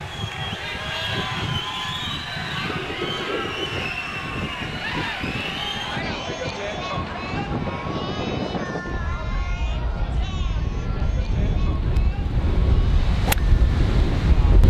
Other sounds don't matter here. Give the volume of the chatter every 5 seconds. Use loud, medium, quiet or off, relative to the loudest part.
loud, loud, medium.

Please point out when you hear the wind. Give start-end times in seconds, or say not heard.
0.0-14.6.